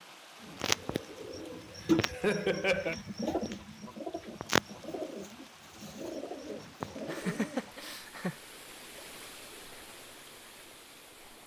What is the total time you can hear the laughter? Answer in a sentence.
The laughter can be heard for 2 seconds in total.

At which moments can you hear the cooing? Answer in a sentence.
The cooing can be heard from 0.4 to 8.0 s.